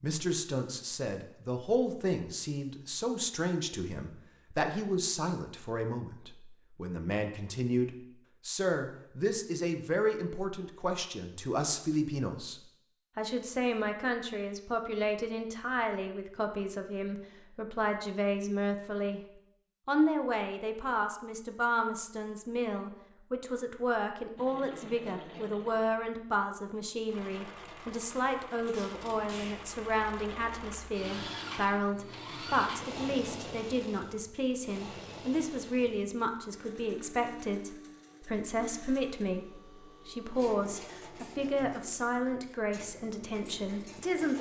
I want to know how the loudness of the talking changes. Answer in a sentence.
The loudness of the talking stays about the same.